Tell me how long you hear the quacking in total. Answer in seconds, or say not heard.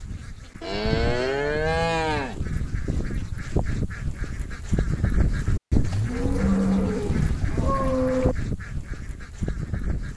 10 s.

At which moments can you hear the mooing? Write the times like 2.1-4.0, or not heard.
0.6-2.4, 5.8-8.3.